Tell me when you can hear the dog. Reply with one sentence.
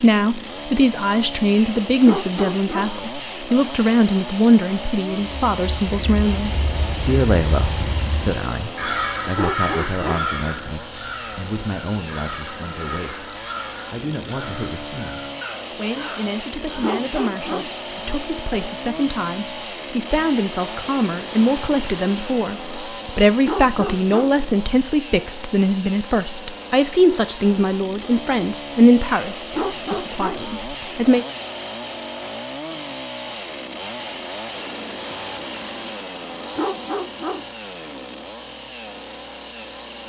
You can hear the dog from 2.0 to 2.9 s, from 9.3 to 10.2 s, from 16.8 to 17.7 s, from 23.4 to 24.4 s, from 29.5 to 30.4 s and from 36.5 to 37.5 s.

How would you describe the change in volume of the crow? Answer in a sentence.
The loudness of the crow goes up, then down.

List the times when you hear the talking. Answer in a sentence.
The talking can be heard from 0.0 to 13.3 s and from 13.9 to 31.2 s.